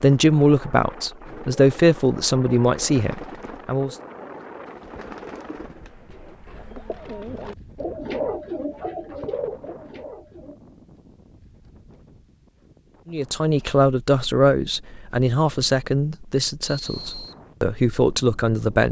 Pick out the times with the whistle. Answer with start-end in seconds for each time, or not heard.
16.6-17.4.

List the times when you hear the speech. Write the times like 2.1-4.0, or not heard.
0.0-4.0, 13.1-18.8.